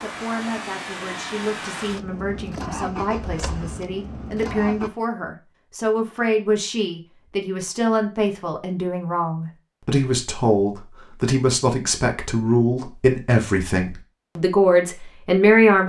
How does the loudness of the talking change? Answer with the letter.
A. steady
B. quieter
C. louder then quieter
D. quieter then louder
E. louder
E.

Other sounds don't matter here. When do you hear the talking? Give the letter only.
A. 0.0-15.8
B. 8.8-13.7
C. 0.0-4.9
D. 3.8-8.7
A.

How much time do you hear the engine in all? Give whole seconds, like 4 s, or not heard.
5 s.